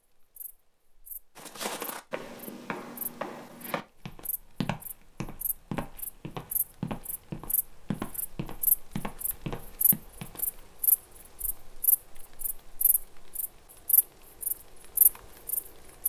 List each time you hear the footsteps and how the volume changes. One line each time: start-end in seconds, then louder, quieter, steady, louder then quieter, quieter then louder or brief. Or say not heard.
1.4-10.7 steady.